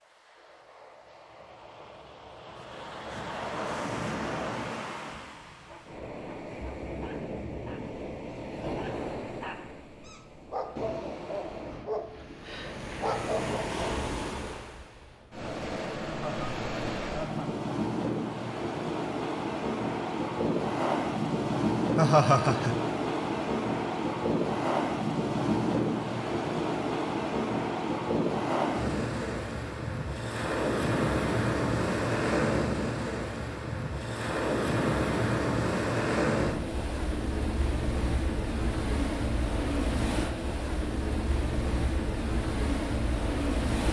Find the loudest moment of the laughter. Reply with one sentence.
The volume of the laughter peaks at 22 seconds.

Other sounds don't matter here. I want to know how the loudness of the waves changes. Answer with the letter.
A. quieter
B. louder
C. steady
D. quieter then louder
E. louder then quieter
B.